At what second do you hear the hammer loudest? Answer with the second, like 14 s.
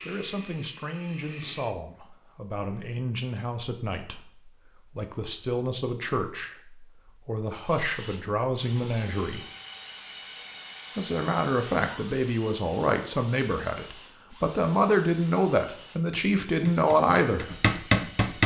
18 s.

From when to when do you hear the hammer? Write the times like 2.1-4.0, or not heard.
16.1-18.4.